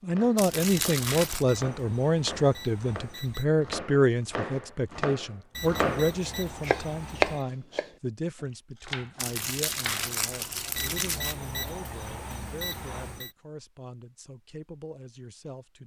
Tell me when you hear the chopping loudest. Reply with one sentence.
The volume of the chopping peaks at 7 seconds.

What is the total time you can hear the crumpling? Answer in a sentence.
The crumpling can be heard for 3 seconds in total.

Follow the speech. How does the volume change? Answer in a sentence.
The volume of the speech goes down.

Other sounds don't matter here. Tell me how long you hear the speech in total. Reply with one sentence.
You can hear the speech for 16 seconds altogether.